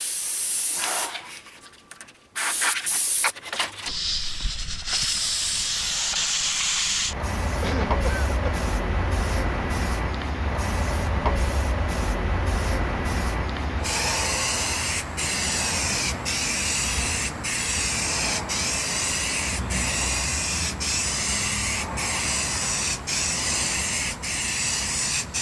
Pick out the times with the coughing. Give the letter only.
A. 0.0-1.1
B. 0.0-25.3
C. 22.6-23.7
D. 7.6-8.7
D.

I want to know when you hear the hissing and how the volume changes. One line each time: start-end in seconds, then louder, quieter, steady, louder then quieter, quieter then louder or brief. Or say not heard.
0.0-25.3 steady.